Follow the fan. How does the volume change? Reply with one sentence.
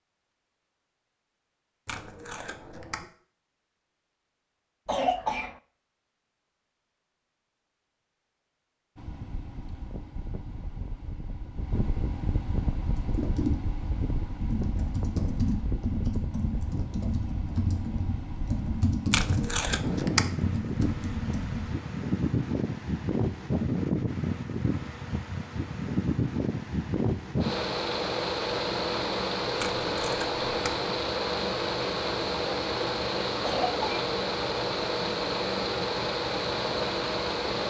The loudness of the fan goes up.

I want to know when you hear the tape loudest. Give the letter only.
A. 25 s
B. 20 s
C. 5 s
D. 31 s
B.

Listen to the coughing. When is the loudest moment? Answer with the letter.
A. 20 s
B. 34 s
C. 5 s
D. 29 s
C.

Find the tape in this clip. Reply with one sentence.
The tape can be heard from 1.9 to 3.0 s, from 19.1 to 20.3 s and from 29.6 to 30.8 s.